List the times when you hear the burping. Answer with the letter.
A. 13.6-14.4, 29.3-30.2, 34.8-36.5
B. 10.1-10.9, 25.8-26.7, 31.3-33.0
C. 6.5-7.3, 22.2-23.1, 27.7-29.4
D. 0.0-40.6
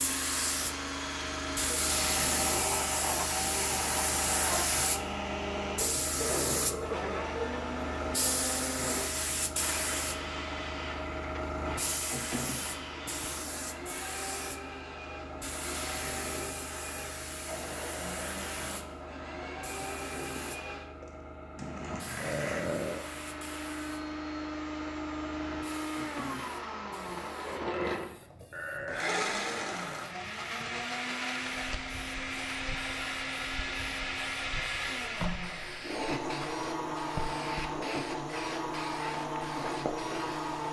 C.